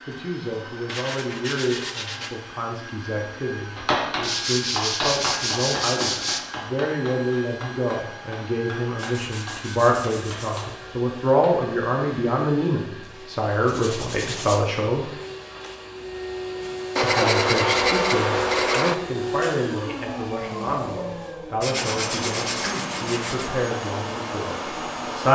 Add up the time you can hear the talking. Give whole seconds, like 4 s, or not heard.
23 s.